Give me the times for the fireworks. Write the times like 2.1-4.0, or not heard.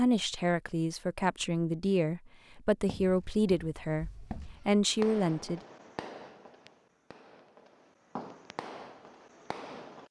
4.8-10.0.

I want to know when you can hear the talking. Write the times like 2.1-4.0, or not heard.
0.0-5.6.